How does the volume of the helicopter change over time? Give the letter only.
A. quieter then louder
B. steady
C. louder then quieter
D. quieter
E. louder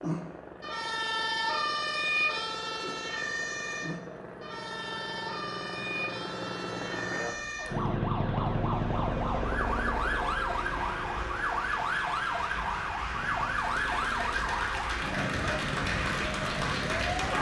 C.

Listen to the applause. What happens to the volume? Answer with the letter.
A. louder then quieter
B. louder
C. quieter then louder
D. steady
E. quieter
B.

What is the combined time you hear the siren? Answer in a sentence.
You can hear the siren for 17 seconds altogether.